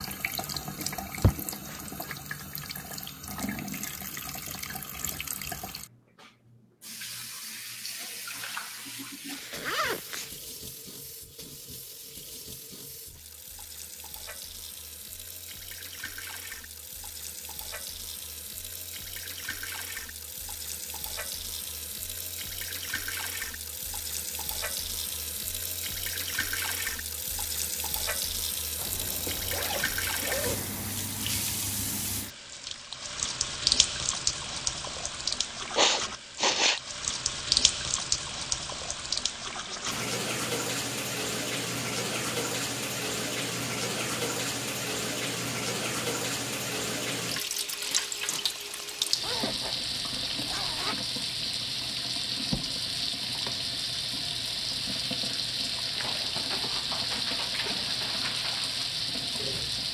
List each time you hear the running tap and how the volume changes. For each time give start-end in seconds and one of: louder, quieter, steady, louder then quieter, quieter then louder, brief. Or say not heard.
0.0-59.8 louder.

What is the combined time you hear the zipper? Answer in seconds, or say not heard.
5 s.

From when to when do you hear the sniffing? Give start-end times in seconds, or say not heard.
1.2-2.1, 35.8-36.8, 47.8-48.5.